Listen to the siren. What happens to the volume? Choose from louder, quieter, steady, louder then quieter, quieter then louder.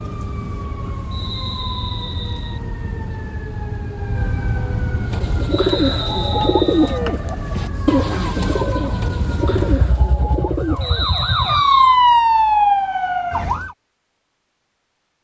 louder.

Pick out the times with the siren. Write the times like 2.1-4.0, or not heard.
0.0-13.8.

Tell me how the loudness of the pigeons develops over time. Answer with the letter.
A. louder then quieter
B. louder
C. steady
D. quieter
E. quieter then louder
D.